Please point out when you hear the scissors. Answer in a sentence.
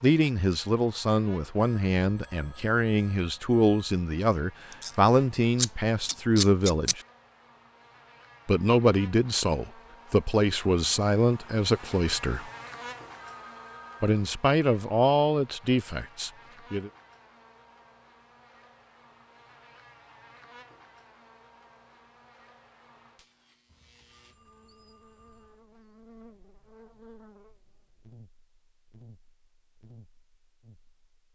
The scissors can be heard from 4.7 to 7.0 s.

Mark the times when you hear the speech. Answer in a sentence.
You can hear the speech from 0.0 to 7.0 s, from 8.4 to 12.5 s and from 14.0 to 16.9 s.